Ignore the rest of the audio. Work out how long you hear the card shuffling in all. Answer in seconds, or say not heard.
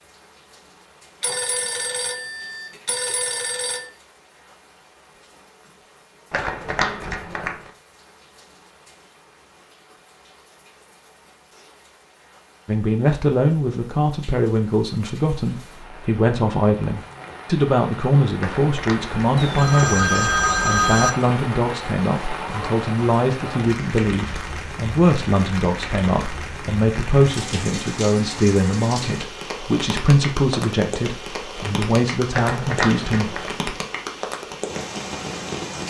4 s.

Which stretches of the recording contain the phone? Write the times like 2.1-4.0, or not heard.
1.2-3.9, 19.4-21.1.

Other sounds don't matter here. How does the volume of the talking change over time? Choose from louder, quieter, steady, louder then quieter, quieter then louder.
steady.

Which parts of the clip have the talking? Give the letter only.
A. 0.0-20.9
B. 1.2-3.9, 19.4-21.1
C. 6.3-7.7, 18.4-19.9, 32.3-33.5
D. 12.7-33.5
D.